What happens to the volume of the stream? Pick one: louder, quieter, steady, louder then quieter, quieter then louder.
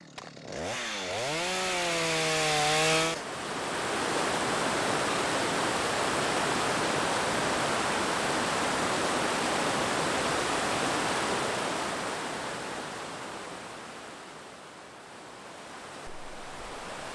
quieter.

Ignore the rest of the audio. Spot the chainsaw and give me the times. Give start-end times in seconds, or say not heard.
0.0-3.2.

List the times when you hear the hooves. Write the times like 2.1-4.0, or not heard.
not heard.